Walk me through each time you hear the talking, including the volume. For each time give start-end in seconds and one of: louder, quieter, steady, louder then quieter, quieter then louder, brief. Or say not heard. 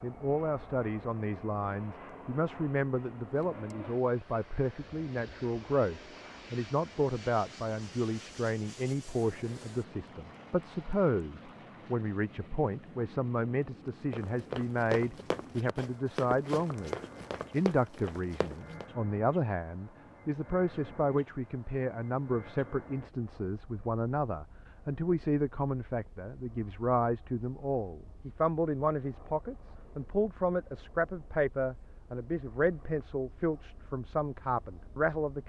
0.0-35.4 steady.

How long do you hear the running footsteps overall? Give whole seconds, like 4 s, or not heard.
5 s.